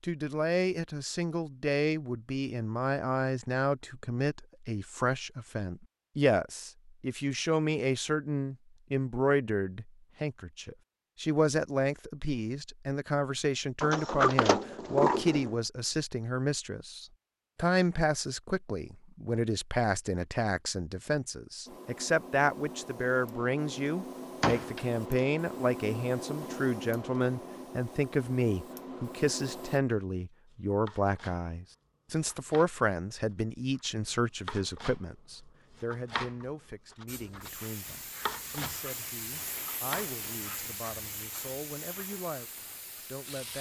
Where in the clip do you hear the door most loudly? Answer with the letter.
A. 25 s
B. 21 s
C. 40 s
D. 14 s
D.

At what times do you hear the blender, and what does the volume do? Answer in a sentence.
You can't hear the blender here.